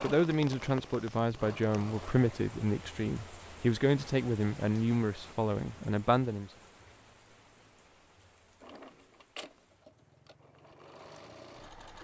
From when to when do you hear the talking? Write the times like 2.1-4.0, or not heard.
0.0-6.5.